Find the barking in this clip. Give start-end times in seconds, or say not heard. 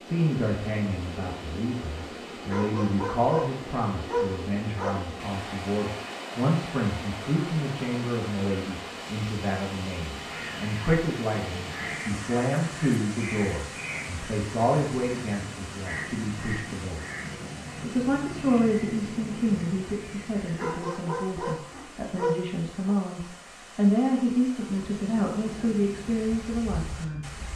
2.5-5.0, 20.6-22.9.